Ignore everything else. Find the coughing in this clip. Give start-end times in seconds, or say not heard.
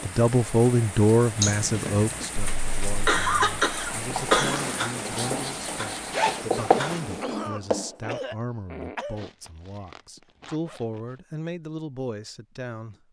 2.4-4.7, 6.5-9.2.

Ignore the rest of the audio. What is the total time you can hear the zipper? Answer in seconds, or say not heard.
4 s.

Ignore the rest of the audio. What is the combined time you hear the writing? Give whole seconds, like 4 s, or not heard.
4 s.